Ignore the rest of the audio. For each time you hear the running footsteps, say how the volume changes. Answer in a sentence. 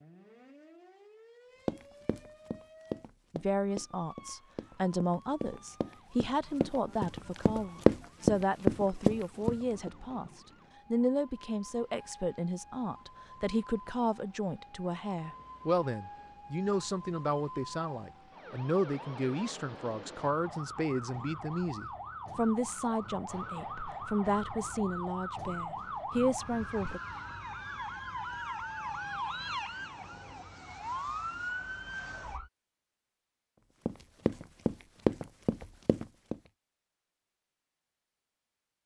You can hear the running footsteps from 1.6 to 9.9 s, getting louder; and briefly from 33.9 to 36.4 s.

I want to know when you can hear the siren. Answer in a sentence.
The siren can be heard from 0.0 to 32.5 s.